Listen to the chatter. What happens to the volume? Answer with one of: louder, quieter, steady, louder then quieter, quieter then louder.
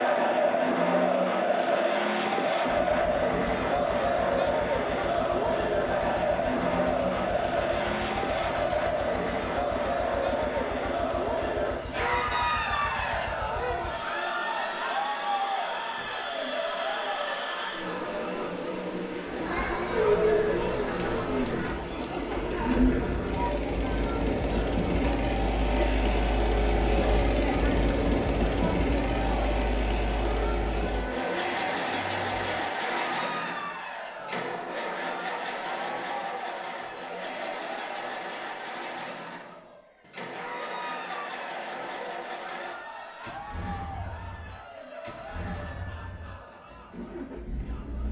quieter.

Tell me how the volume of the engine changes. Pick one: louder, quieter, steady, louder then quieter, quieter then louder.
louder then quieter.